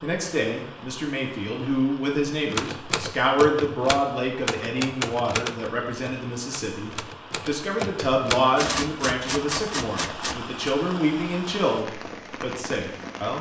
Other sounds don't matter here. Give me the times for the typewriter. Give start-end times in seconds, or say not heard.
2.5-10.8.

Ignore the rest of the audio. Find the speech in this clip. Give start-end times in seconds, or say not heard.
0.0-13.3.